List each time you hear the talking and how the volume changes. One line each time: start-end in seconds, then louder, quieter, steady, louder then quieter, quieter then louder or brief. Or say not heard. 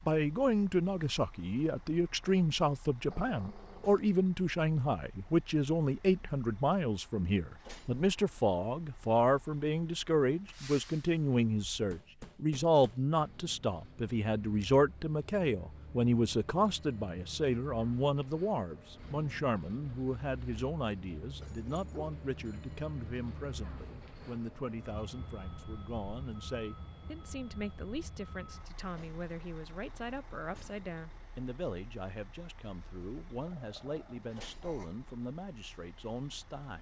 0.1-36.7 quieter.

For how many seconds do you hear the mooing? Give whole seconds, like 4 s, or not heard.
not heard.